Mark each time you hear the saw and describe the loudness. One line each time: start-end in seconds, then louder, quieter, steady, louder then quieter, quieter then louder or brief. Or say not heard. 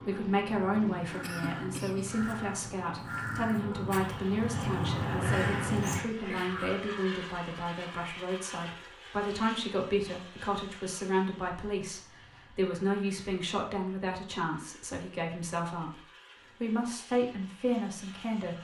not heard.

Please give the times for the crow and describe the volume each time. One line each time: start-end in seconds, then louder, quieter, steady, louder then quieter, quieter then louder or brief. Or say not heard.
1.0-6.8 louder.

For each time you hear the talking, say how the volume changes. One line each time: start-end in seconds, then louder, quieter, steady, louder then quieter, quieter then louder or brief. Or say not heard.
0.1-16.0 steady
16.6-18.5 brief.